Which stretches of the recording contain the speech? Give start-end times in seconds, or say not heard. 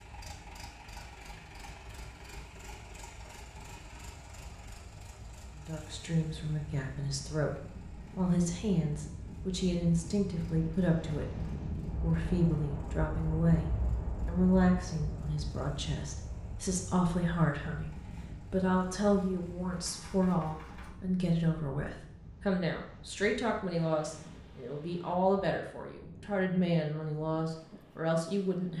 5.5-28.7.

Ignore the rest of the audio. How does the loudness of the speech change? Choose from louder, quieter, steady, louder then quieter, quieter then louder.
steady.